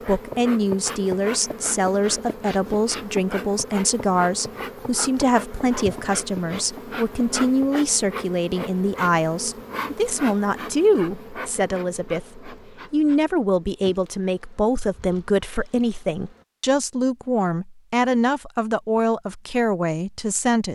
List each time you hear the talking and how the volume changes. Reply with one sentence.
The talking can be heard from 0.1 to 20.6 s, at a steady volume.